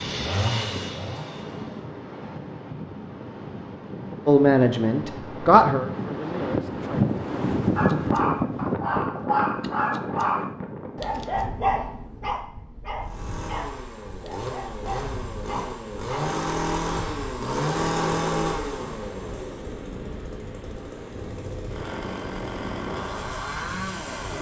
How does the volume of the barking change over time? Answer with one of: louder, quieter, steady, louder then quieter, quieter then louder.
quieter.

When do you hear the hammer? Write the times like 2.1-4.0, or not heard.
not heard.